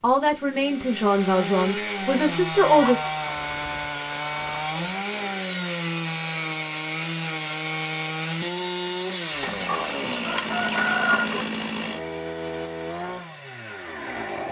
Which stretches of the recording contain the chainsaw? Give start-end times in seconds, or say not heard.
0.0-14.4.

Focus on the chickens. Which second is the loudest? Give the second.
11 s.